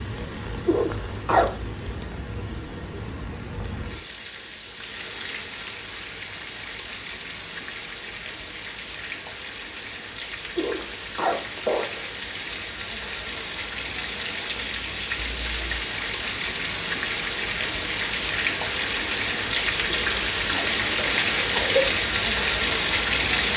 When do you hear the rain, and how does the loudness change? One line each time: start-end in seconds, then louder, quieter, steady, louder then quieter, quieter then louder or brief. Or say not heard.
0.0-23.5 louder.